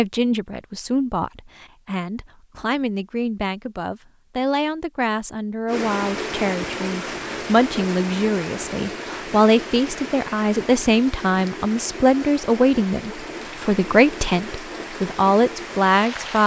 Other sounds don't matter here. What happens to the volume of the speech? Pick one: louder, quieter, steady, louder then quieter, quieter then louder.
louder.